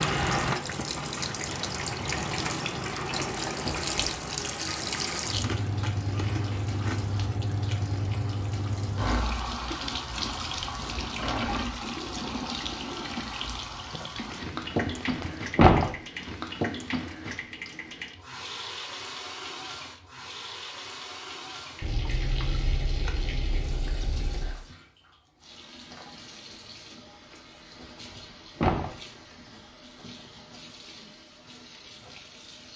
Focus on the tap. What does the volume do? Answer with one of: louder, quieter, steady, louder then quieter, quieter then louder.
quieter.